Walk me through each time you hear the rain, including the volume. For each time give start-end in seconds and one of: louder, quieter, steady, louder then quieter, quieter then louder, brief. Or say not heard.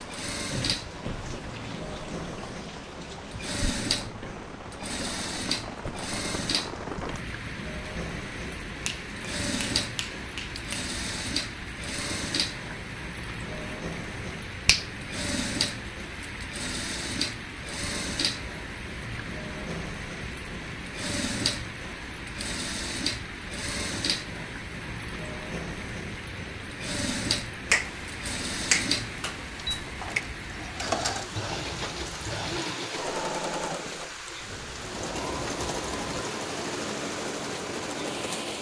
0.0-38.5 steady.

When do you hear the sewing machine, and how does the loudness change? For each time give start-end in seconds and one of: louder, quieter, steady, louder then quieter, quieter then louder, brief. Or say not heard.
0.0-38.5 steady.